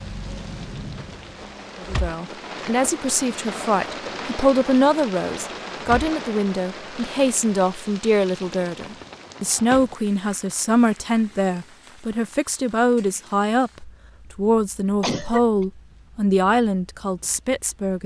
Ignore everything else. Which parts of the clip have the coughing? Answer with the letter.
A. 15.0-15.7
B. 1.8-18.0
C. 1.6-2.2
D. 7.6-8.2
A.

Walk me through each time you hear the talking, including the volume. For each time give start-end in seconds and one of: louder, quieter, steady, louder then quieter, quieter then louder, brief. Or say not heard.
1.8-18.0 steady.